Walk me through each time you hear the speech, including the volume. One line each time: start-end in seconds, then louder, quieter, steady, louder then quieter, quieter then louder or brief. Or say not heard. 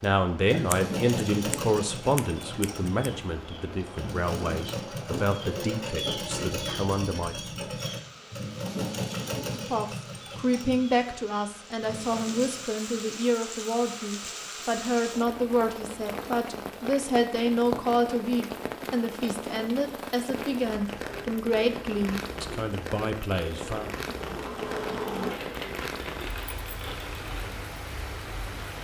0.0-7.4 quieter
9.7-23.9 steady.